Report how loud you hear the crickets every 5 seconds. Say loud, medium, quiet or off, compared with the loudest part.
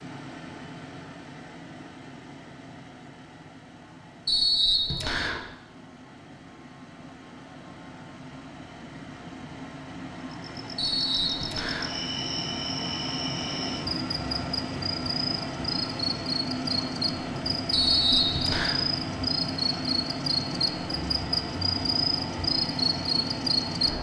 off, off, medium, loud, loud.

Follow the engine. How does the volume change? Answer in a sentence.
The volume of the engine goes up.